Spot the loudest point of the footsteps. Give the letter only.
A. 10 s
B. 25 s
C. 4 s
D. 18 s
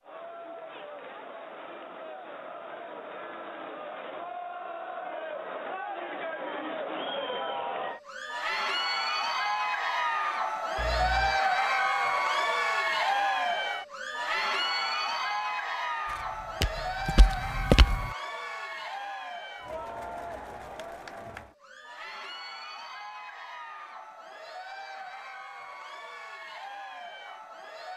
D.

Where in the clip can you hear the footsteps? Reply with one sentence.
The footsteps can be heard from 16.1 to 18.1 s.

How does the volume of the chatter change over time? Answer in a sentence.
The loudness of the chatter goes up, then down.